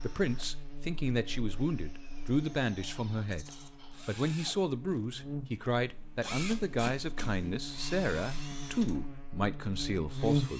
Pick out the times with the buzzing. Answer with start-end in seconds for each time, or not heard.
0.0-10.5.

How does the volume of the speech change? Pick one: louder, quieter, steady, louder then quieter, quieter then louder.
steady.